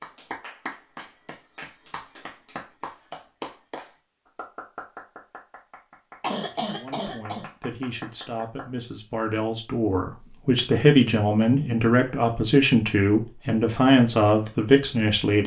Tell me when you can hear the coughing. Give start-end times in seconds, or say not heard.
6.2-7.5.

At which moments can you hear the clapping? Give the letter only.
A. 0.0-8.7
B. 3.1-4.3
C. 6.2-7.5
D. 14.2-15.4
A.